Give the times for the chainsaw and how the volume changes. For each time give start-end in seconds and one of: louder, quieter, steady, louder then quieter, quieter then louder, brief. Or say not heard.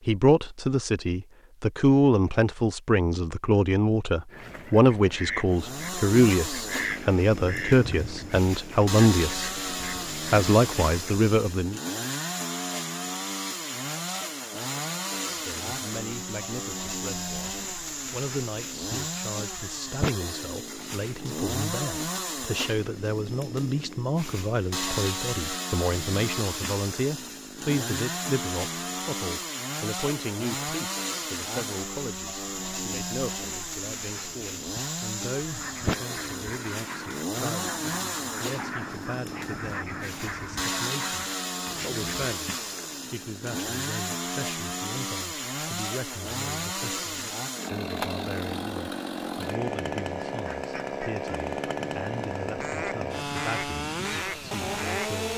5.5-55.3 steady.